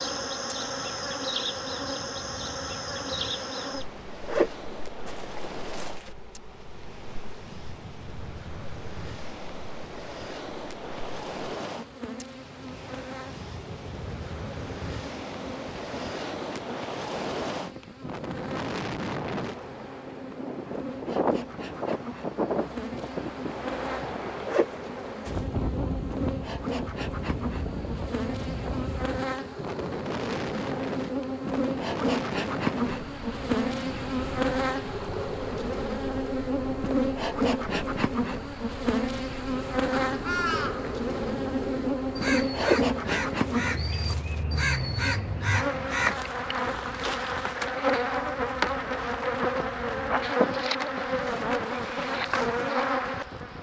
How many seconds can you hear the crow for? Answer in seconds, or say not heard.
6 s.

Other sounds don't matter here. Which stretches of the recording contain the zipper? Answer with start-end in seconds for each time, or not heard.
4.2-6.1, 24.4-25.4, 42.5-44.4.